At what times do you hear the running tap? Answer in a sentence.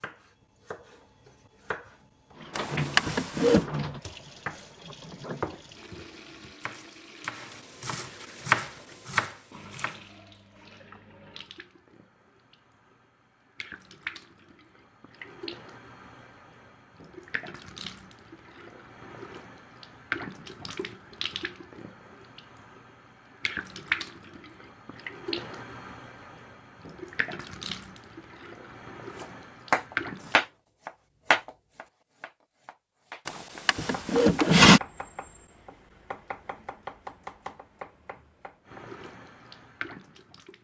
The running tap can be heard from 2.4 to 30.4 s and from 38.7 to 40.6 s.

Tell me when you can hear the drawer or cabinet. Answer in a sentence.
The drawer or cabinet can be heard from 2.5 to 3.6 s and from 33.2 to 34.8 s.